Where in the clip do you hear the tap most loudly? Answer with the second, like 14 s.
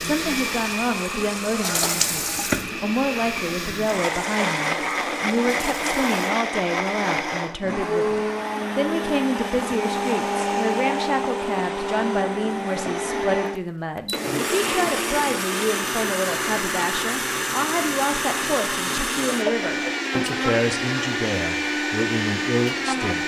2 s.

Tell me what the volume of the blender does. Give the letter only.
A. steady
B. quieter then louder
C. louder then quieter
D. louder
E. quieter
A.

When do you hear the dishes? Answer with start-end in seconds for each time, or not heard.
not heard.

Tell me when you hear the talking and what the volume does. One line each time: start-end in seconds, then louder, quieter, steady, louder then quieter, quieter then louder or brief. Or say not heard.
0.0-23.2 steady.